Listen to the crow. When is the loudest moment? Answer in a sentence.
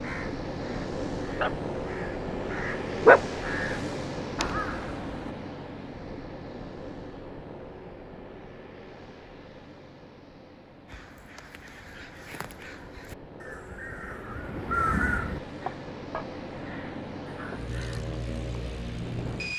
The loudest moment of the crow is at 3 seconds.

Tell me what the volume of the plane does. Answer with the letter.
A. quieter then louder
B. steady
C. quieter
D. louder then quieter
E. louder
A.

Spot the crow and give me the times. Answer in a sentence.
You can hear the crow from 0.0 to 5.3 s and from 10.8 to 18.0 s.